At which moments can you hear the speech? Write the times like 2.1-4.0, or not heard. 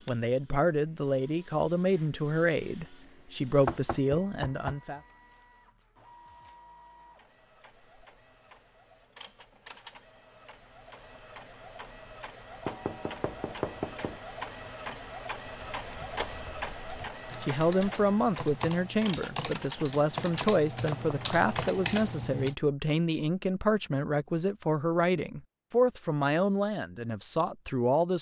0.1-5.0, 17.4-28.1.